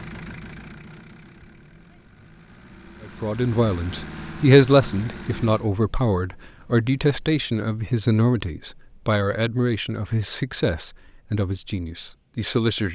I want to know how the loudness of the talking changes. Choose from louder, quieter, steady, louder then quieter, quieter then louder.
quieter.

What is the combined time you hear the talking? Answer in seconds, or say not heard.
10 s.